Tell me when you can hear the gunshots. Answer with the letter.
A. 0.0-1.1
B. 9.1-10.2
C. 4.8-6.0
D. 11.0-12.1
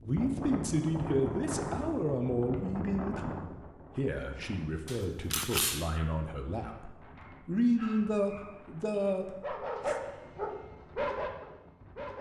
C.